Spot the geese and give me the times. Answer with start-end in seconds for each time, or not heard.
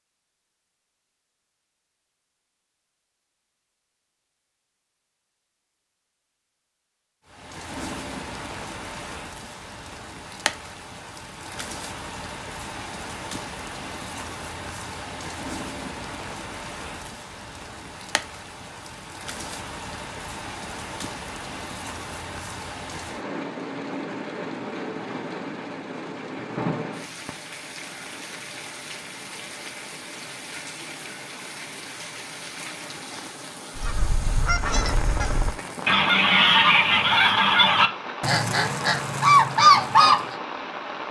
33.8-40.4.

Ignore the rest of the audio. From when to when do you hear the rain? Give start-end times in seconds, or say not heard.
7.2-41.0.